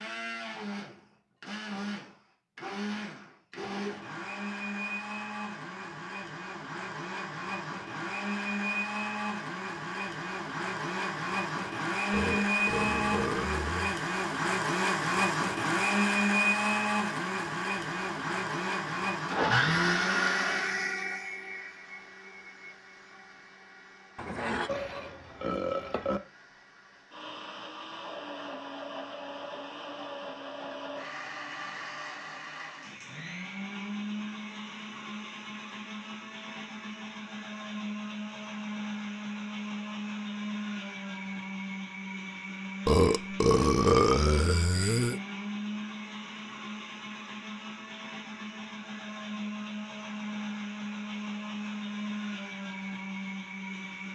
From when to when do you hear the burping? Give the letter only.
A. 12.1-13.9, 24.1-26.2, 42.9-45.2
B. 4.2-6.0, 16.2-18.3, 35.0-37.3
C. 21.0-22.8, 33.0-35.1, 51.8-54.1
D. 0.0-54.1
A.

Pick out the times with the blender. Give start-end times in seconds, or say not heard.
0.0-54.1.